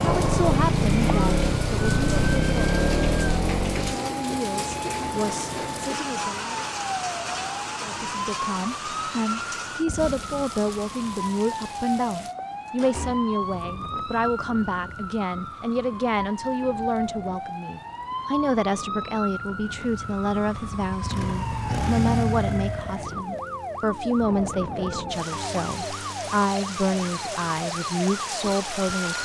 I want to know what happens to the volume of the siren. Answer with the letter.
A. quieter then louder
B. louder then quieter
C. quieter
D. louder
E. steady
E.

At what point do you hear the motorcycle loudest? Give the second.
1 s.